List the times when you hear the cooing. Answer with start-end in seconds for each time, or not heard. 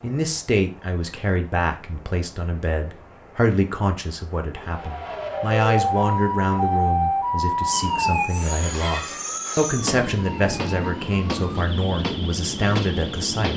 not heard.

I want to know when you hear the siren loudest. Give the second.
7 s.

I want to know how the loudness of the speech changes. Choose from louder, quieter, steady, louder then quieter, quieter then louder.
steady.